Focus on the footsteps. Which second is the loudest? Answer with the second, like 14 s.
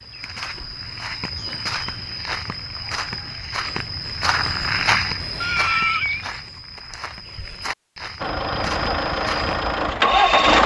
5 s.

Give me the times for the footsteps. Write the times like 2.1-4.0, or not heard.
0.0-9.9.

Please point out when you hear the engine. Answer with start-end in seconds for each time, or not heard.
8.2-10.6.